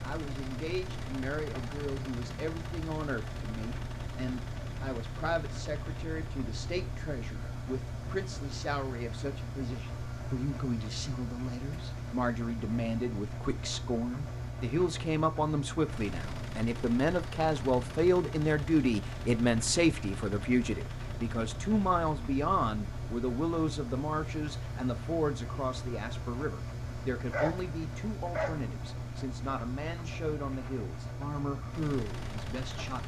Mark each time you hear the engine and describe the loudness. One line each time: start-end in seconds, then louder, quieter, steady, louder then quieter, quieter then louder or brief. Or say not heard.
0.0-33.0 steady.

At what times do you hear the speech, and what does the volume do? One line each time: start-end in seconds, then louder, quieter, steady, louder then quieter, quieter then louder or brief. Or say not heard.
0.0-33.0 louder then quieter.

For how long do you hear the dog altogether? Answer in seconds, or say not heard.
2 s.